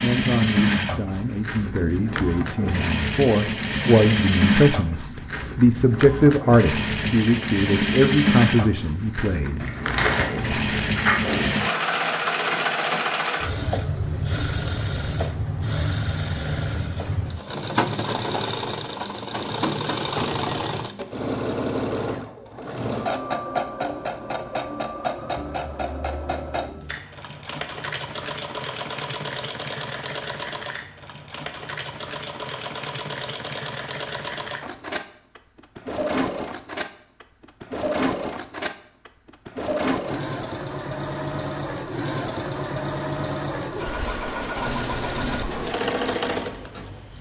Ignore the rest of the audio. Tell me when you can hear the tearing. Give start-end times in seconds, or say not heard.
9.6-11.4.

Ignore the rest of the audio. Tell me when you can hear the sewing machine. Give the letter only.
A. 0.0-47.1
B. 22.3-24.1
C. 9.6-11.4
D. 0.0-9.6
A.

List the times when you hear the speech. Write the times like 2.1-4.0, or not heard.
0.0-9.6.